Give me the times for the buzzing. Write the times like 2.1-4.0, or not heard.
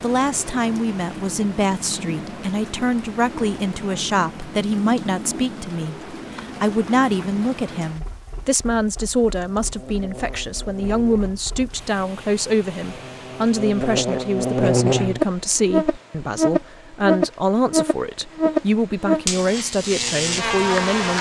9.3-21.1.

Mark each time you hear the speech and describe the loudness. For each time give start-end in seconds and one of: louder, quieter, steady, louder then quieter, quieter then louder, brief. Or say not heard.
0.0-21.1 steady.